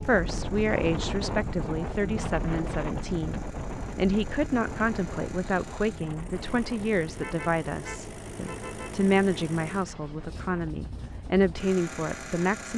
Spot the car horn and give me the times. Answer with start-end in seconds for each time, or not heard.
7.2-9.0.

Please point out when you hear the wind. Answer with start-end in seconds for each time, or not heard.
0.0-12.7.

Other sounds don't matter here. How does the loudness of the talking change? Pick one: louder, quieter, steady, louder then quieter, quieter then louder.
steady.